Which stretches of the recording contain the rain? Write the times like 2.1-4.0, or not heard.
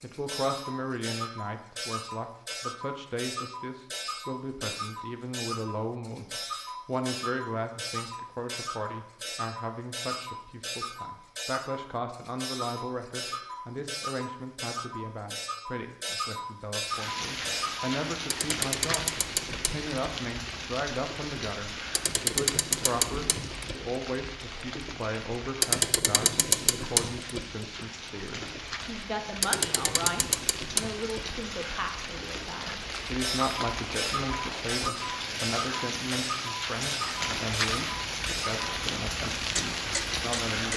16.9-40.7.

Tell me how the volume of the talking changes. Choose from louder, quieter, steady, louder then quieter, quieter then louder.
steady.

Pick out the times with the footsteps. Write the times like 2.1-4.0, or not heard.
not heard.